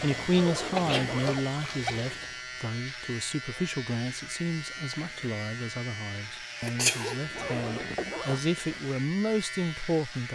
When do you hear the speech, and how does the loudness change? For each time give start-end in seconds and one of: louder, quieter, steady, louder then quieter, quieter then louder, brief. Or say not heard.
0.0-10.3 quieter then louder.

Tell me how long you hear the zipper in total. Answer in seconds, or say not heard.
3 s.